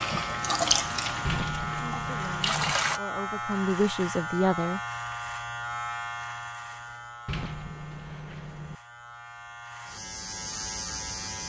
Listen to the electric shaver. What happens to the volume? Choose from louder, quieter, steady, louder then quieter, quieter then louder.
quieter then louder.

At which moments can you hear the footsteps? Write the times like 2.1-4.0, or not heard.
not heard.